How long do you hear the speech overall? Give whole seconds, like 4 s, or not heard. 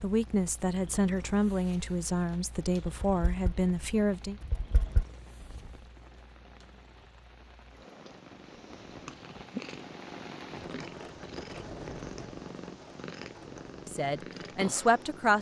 6 s.